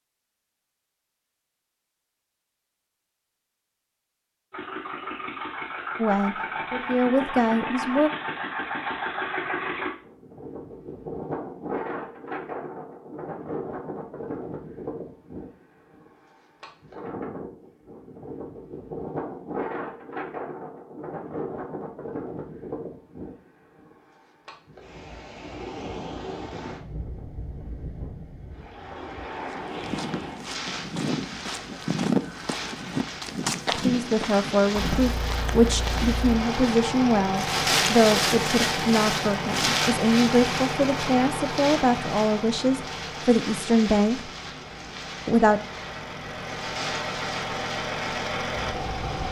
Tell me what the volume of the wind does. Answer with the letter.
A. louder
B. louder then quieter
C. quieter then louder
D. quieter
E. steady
B.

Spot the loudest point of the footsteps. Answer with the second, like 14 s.
32 s.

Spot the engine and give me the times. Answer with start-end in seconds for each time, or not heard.
4.5-9.9, 34.7-49.2.